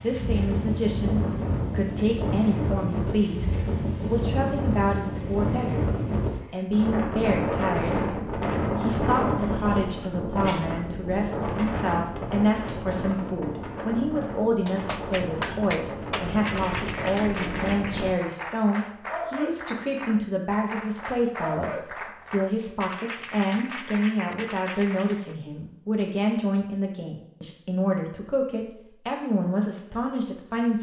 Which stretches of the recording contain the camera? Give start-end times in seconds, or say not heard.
9.3-10.7.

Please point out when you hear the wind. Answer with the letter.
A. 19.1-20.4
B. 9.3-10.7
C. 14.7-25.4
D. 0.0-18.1
D.